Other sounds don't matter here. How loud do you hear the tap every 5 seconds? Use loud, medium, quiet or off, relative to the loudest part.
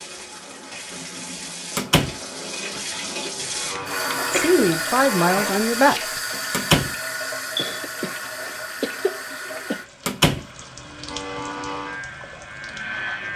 loud, loud, medium.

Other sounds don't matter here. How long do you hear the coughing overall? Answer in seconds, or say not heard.
3 s.